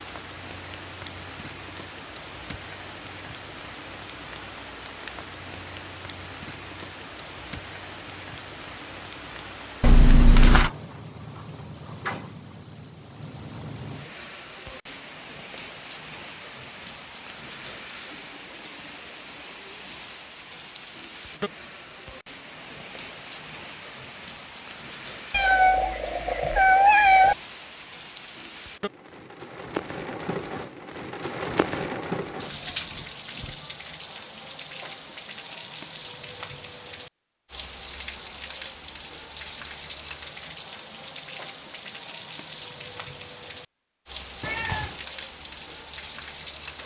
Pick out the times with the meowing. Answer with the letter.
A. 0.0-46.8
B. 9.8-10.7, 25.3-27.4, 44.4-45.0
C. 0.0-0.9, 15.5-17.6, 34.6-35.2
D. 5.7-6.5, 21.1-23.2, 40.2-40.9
B.